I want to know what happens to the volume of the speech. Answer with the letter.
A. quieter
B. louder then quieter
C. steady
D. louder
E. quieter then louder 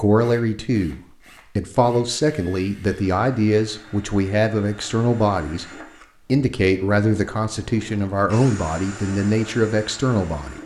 C.